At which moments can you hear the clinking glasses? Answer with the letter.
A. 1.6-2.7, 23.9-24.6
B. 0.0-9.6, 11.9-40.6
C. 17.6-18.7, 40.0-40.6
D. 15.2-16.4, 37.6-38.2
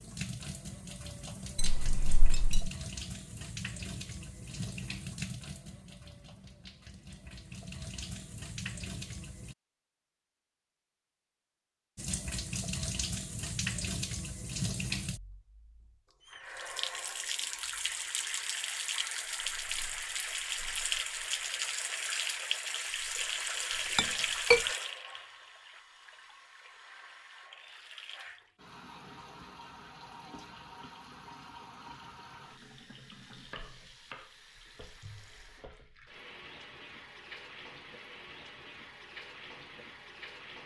A.